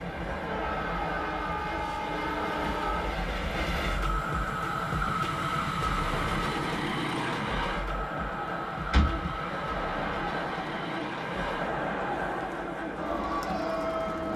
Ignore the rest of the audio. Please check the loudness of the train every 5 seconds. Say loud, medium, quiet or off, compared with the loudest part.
loud, loud, medium.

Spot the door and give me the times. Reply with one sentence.
The door can be heard from 8.9 to 9.3 s.